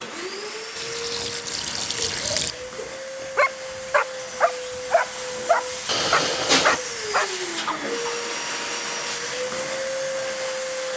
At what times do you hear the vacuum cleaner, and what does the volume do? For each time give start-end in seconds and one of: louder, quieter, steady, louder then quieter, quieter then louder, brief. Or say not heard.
0.0-10.9 louder.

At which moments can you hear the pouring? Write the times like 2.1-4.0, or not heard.
0.8-2.5, 5.8-6.8.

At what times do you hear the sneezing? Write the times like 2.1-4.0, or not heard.
not heard.